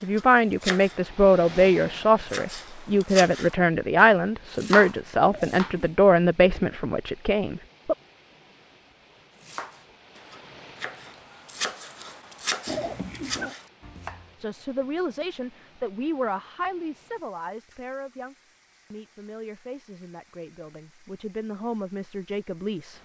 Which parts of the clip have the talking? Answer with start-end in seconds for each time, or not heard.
0.0-8.0, 14.4-23.0.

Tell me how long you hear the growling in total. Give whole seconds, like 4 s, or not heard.
2 s.